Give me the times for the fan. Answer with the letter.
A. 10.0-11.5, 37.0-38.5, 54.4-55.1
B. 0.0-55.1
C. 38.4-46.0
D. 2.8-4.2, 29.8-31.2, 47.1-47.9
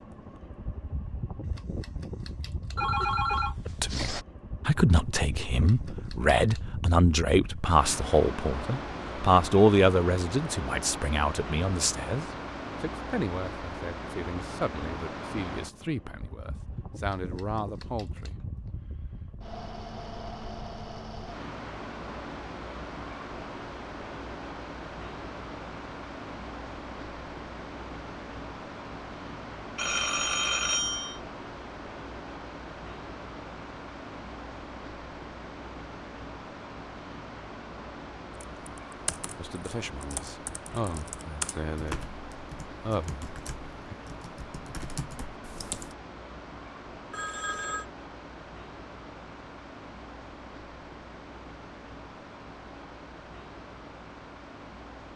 B.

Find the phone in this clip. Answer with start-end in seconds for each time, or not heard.
2.8-4.2, 29.8-31.2, 47.1-47.9.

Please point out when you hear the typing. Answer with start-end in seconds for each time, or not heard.
38.4-46.0.